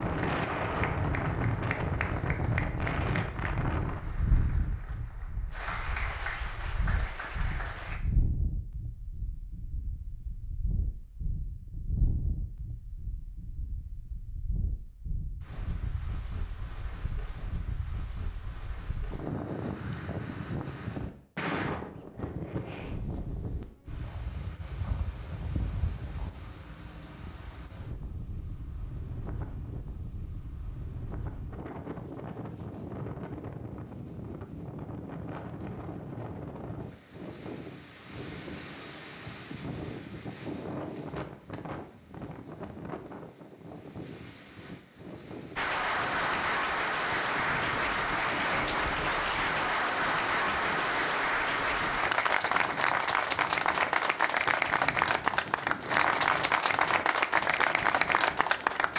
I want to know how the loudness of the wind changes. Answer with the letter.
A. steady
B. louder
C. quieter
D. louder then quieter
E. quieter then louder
C.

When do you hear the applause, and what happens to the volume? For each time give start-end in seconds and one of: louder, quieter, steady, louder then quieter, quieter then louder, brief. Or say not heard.
0.0-8.0 quieter then louder
45.5-58.9 steady.